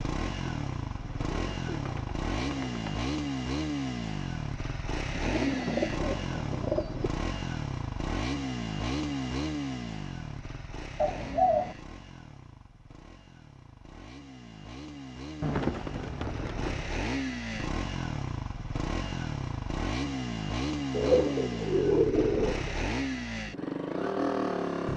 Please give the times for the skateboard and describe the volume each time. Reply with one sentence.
You can't hear the skateboard here.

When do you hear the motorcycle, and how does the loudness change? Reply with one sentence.
The motorcycle can be heard from 0.0 to 24.9 s, getting quieter then louder.